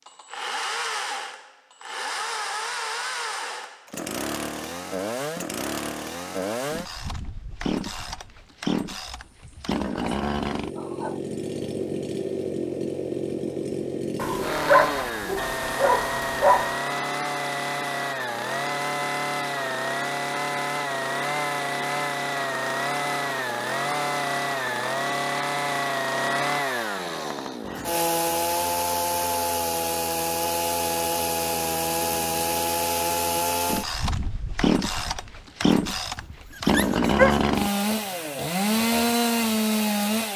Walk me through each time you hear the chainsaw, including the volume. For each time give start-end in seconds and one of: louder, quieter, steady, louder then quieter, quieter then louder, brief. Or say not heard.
0.1-40.3 louder.